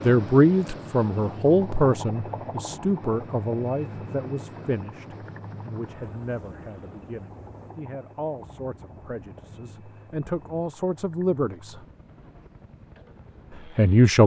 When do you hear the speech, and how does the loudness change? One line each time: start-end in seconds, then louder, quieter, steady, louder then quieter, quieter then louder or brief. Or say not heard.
0.0-11.8 quieter then louder
13.8-14.2 brief.